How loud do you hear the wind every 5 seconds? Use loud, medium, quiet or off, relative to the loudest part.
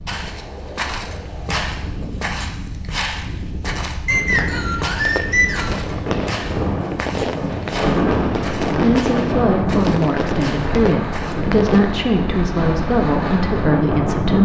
medium, loud, loud.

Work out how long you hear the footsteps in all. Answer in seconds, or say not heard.
11 s.